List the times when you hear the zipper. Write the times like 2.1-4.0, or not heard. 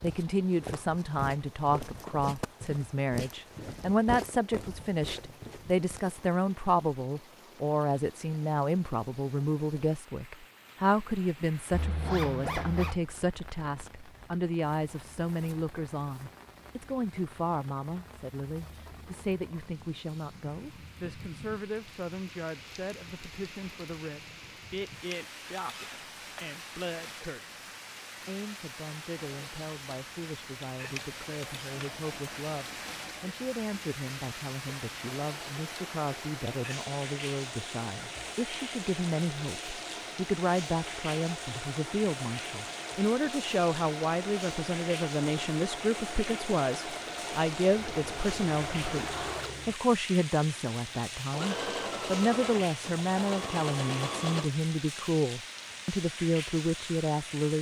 11.7-13.0, 25.6-26.4, 47.8-49.8.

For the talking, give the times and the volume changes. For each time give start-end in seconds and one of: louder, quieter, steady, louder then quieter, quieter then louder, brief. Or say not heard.
0.0-57.5 quieter then louder.